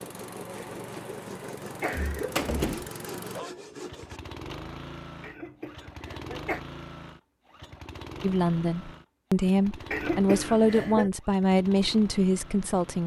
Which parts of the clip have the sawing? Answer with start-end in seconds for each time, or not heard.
0.0-4.2.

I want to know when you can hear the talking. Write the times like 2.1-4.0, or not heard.
8.2-13.0.